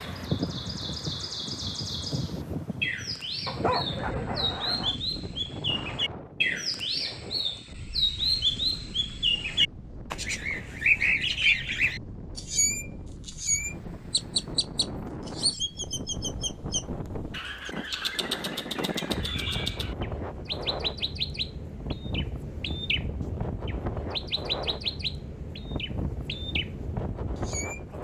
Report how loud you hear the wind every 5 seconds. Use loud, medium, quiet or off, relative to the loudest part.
loud, medium, medium, loud, loud, loud.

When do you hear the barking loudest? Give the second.
4 s.